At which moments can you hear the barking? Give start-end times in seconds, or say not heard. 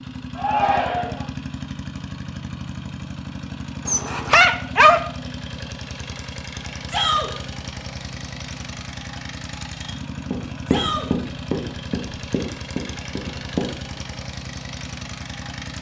3.9-5.0.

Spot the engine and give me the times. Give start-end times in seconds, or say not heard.
0.0-15.7.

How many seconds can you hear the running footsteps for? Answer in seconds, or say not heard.
4 s.